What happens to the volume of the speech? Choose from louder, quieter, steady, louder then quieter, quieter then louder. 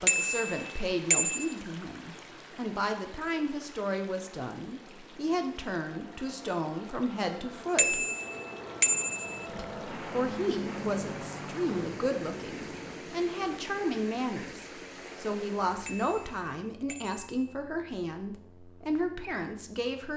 steady.